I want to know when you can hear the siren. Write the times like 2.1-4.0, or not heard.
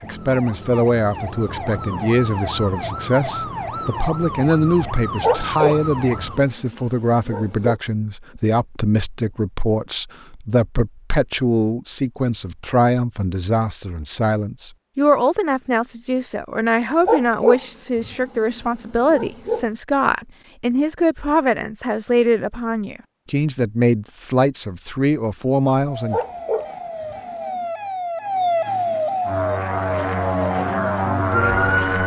0.0-6.5, 25.8-32.0.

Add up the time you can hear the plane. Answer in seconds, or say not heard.
3 s.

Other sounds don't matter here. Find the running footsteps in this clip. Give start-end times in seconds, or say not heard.
not heard.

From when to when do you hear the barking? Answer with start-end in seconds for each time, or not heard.
5.2-7.8, 17.1-19.6, 26.1-27.6.